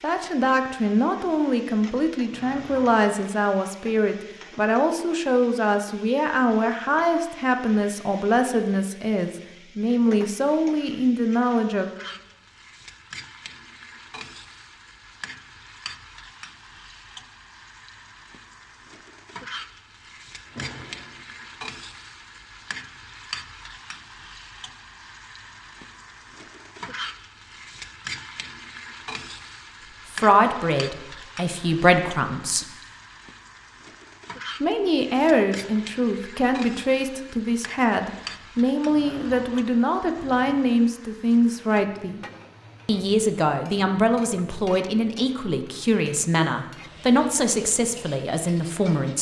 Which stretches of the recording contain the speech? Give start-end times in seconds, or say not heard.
0.0-11.9, 30.1-32.7, 34.6-42.2, 42.9-49.1.